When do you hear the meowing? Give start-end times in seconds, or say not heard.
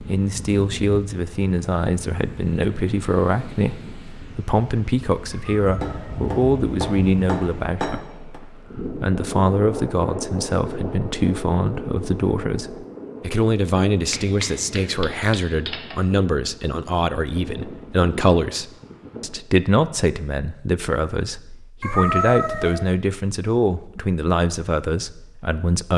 5.3-6.3, 21.8-22.9.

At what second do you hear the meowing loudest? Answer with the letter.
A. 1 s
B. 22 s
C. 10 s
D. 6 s
B.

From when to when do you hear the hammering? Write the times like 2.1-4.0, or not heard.
5.8-8.4, 14.1-16.1.